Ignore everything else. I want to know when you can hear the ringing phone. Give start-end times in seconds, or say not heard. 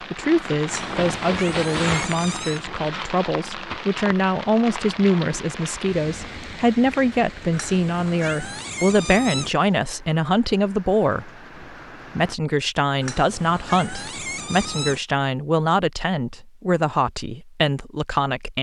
not heard.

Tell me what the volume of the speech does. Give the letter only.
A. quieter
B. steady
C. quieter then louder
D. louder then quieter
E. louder
B.